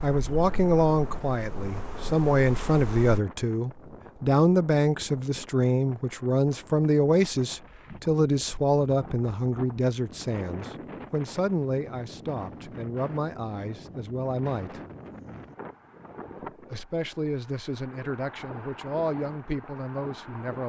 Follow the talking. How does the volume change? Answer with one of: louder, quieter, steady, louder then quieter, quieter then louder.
quieter.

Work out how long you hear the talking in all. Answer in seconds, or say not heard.
19 s.